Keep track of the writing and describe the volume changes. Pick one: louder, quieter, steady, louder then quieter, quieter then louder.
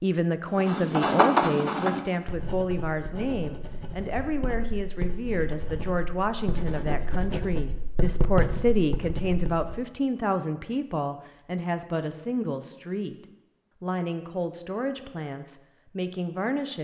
quieter then louder.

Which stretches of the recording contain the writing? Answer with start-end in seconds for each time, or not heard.
0.6-9.8.